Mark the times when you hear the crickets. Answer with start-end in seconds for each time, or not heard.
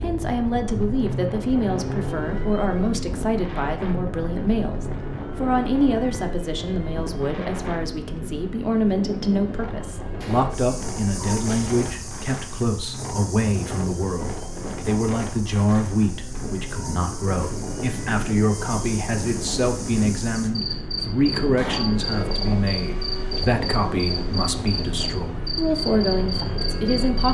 10.5-27.3.